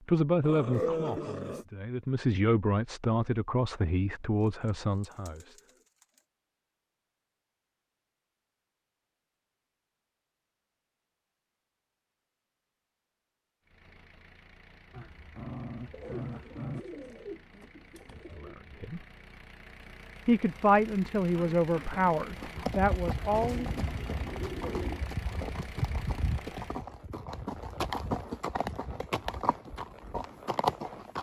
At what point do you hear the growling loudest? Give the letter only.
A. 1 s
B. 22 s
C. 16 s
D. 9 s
A.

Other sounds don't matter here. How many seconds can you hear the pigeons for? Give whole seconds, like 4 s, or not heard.
6 s.